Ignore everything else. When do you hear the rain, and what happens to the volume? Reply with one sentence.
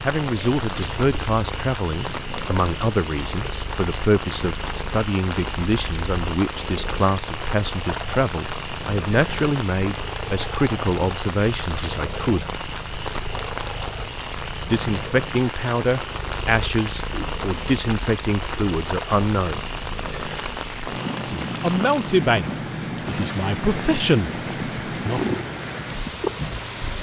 You can hear the rain from 0.0 to 26.9 s, at a steady volume.